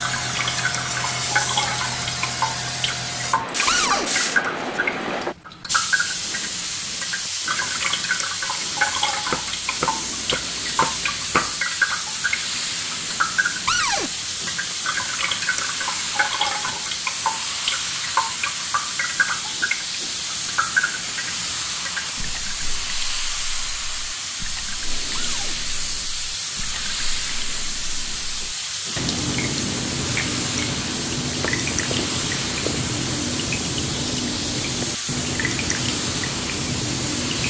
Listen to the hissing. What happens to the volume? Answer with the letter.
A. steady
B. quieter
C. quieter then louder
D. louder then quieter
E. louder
A.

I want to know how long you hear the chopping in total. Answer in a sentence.
The chopping can be heard for 4 seconds in total.